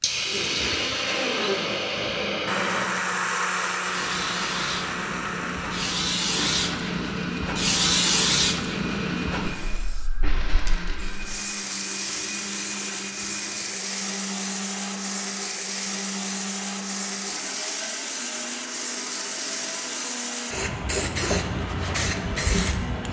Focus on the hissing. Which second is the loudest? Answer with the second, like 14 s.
8 s.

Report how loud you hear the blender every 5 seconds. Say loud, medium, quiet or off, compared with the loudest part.
loud, medium, medium, medium, medium.